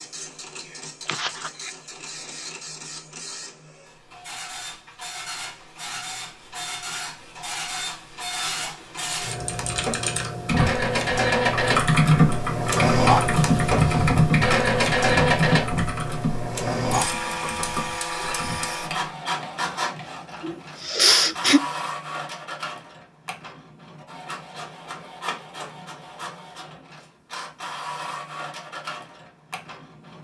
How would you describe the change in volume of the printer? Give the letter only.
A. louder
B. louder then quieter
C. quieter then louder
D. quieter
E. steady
B.